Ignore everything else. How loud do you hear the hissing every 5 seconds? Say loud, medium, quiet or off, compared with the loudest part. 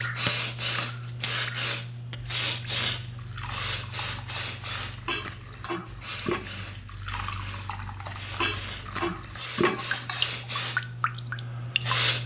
loud, quiet, loud.